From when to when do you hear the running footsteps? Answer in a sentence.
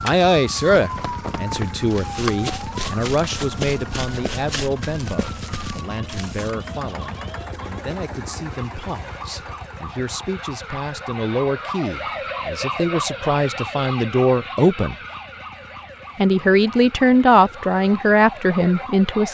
The running footsteps can be heard from 0.8 to 6.5 s.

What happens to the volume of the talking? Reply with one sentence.
The volume of the talking goes down, then up.